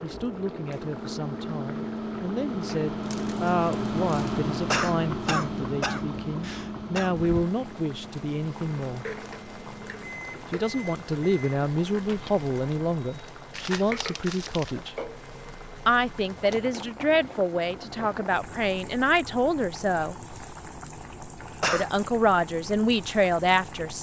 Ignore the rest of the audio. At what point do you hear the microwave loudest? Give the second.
4 s.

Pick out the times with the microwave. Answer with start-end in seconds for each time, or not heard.
0.0-12.3.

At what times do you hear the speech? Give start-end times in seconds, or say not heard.
0.0-9.1, 10.5-14.9, 15.8-20.1, 21.7-23.9.